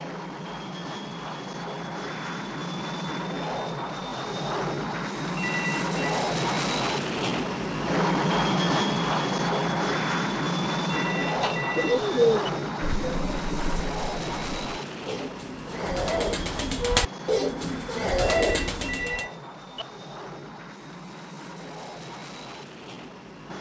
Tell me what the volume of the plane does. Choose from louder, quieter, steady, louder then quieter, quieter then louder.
louder then quieter.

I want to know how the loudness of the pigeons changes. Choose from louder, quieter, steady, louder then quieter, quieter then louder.
quieter then louder.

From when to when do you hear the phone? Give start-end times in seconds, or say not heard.
5.3-6.2, 10.9-12.5, 18.2-19.9.